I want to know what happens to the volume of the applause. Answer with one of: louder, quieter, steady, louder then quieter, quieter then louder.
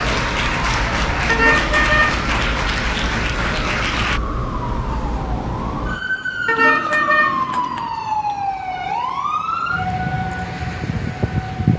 steady.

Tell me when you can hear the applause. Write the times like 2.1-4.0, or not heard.
0.0-4.2.